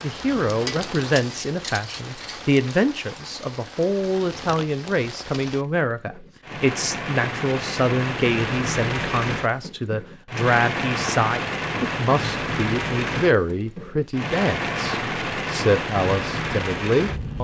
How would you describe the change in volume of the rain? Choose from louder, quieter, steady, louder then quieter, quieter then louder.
louder.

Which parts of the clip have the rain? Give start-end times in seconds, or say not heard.
0.0-17.3.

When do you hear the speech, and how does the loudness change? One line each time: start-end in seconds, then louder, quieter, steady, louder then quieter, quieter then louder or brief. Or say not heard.
0.0-17.3 steady.